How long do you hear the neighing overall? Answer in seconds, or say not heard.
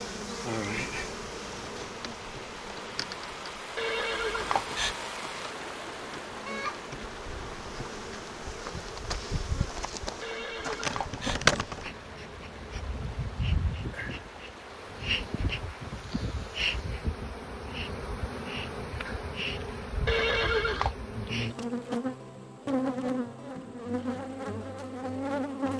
3 s.